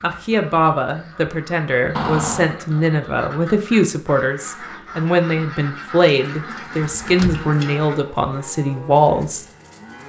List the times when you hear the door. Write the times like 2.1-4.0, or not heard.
1.9-2.5, 6.8-7.5.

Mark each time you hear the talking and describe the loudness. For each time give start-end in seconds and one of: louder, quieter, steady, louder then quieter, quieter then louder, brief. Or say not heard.
0.0-9.4 steady.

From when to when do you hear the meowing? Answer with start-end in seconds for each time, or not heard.
not heard.